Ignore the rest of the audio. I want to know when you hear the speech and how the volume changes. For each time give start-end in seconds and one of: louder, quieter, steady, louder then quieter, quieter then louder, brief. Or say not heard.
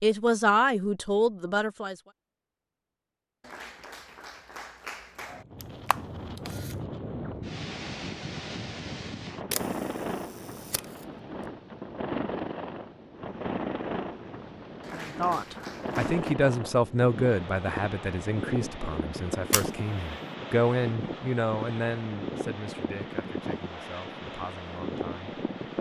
0.0-1.9 brief
14.8-25.7 quieter.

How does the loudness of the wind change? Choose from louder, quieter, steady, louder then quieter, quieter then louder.
steady.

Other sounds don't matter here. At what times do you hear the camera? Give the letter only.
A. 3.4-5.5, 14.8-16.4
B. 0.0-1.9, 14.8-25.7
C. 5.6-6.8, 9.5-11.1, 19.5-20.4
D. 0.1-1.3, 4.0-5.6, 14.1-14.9
C.